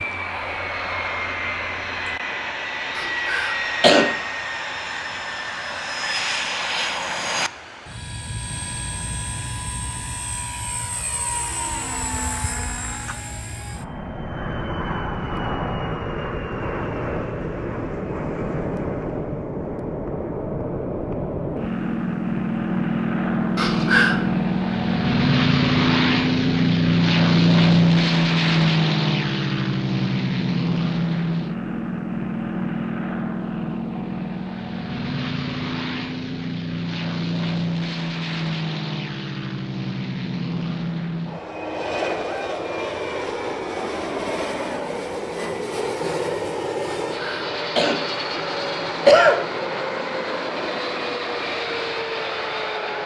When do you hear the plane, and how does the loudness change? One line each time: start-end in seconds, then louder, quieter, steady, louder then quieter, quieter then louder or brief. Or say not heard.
0.0-53.0 louder then quieter.